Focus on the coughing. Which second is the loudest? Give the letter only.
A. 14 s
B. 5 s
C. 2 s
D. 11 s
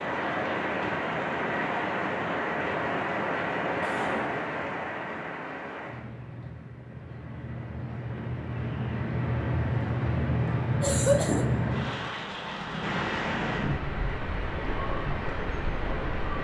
D.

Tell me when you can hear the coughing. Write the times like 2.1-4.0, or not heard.
3.8-4.3, 10.8-11.4.